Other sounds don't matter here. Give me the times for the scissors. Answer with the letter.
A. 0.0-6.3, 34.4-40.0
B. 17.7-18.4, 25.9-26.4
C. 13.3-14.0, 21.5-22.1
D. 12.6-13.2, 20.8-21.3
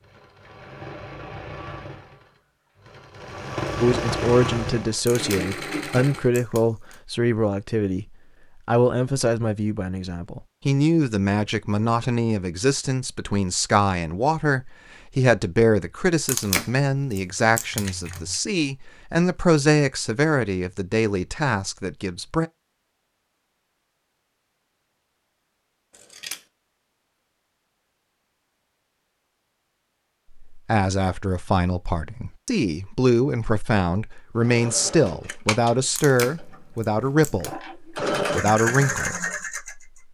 B.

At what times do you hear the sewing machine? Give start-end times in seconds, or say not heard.
0.0-6.3, 34.4-40.0.